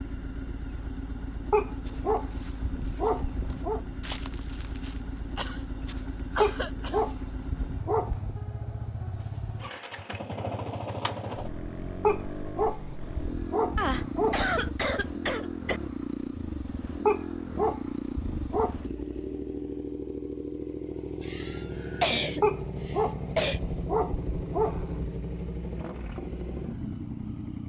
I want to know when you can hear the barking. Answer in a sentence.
The barking can be heard from 1.5 to 3.8 s, from 6.3 to 8.4 s, from 12.0 to 14.7 s, from 17.1 to 18.8 s and from 22.4 to 25.1 s.